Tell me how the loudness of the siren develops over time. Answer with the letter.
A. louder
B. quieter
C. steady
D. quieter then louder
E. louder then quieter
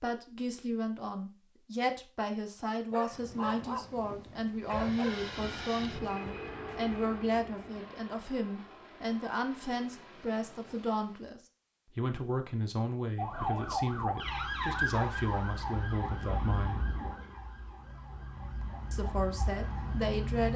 D.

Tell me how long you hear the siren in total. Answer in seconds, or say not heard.
7 s.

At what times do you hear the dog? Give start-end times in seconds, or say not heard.
2.9-5.3.